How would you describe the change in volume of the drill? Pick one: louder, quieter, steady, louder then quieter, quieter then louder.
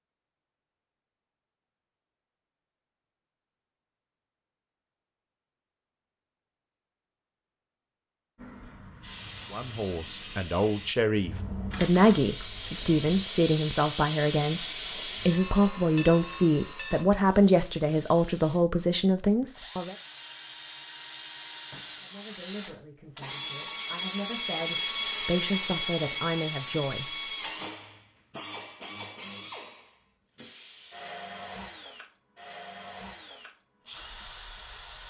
louder then quieter.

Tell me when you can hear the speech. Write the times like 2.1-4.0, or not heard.
9.5-19.9, 22.0-27.1.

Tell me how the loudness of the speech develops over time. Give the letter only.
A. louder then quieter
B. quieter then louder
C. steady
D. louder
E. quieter
E.